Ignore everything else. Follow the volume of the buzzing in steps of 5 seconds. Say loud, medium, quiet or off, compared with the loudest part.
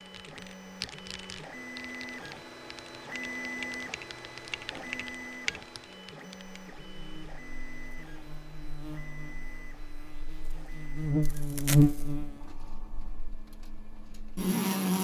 off, quiet, loud.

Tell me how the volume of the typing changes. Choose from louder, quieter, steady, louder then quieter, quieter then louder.
quieter then louder.